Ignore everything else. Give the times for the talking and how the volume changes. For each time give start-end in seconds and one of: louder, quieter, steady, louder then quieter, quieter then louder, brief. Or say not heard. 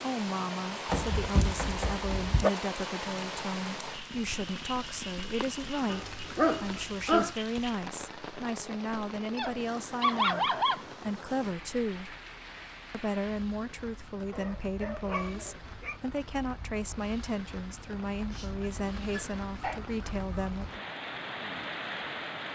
0.0-12.2 steady
12.9-20.9 steady.